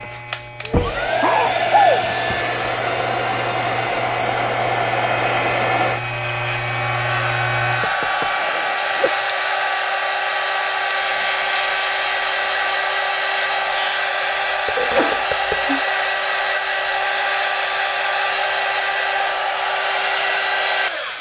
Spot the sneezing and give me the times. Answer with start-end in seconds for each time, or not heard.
0.7-2.0, 8.3-9.2, 14.8-15.8.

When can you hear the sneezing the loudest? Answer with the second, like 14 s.
2 s.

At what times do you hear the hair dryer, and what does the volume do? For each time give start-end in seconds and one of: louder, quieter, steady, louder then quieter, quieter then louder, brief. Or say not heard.
0.0-21.1 steady.